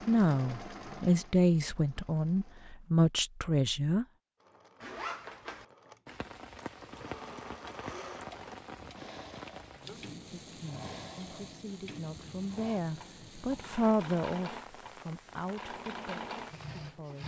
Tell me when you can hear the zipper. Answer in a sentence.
The zipper can be heard from 4.8 to 5.7 s.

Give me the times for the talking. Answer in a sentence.
You can hear the talking from 0.1 to 4.0 s and from 9.8 to 17.2 s.